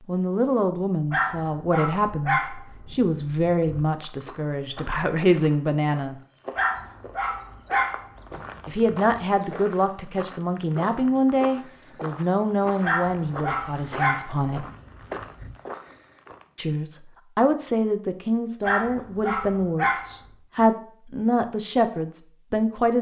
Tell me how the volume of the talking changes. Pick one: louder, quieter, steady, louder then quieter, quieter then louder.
steady.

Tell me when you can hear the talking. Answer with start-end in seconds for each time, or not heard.
0.1-6.2, 8.7-14.7, 16.6-22.9.